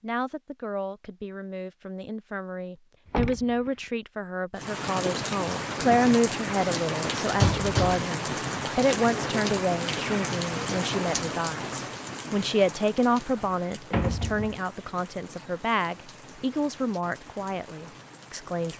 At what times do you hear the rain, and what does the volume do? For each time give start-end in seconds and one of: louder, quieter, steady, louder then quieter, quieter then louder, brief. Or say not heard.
4.5-18.7 quieter.